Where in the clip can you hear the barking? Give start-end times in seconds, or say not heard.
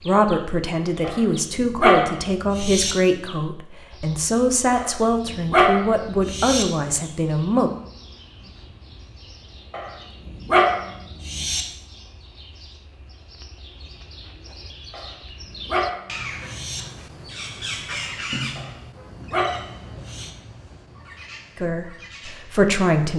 1.0-3.0, 4.8-6.7, 9.7-11.7, 14.9-16.9, 18.6-20.3.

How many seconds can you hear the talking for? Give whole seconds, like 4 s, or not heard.
9 s.